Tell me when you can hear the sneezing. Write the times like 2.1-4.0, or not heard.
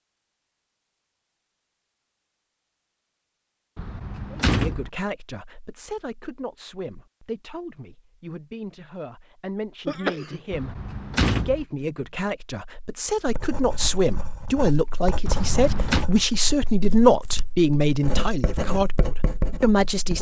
9.8-10.4.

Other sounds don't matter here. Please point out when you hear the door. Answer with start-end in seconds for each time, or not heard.
3.8-4.9, 10.5-11.7, 15.2-16.1.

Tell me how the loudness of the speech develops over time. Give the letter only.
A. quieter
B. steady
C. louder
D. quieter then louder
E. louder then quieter
C.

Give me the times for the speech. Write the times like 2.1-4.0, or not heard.
4.3-20.1.